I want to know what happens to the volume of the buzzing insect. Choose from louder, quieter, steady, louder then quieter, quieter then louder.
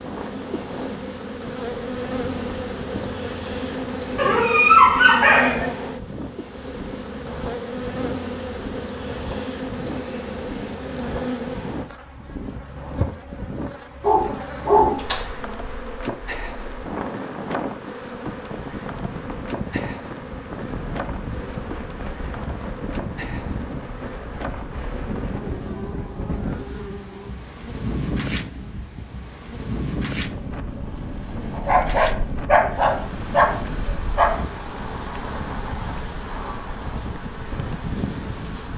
quieter.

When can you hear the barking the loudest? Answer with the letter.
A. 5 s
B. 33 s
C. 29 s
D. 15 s
A.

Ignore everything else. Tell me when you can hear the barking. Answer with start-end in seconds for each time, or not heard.
4.2-5.7, 14.0-15.2, 31.5-34.4.